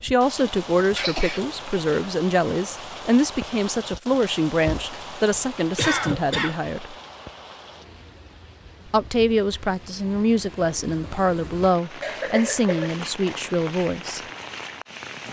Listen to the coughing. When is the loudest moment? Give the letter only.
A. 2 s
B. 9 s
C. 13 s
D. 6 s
D.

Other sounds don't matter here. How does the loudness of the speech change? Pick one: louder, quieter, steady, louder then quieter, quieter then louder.
steady.